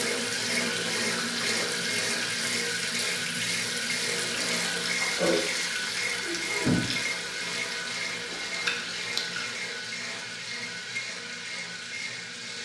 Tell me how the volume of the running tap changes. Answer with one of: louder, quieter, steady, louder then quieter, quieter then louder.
quieter.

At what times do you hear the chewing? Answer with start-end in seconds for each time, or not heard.
4.3-9.4.